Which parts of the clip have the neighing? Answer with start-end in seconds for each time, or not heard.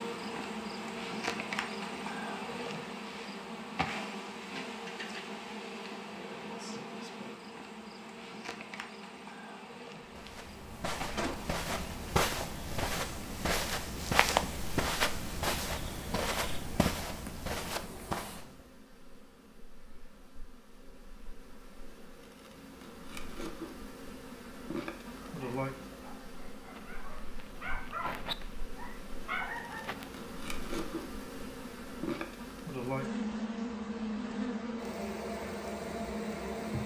11.2-12.0.